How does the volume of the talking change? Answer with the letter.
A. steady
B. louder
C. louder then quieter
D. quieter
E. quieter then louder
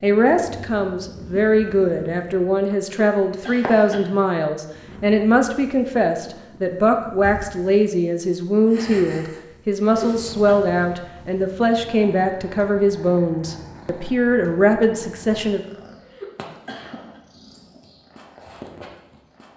A.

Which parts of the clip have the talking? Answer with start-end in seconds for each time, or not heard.
0.0-15.6.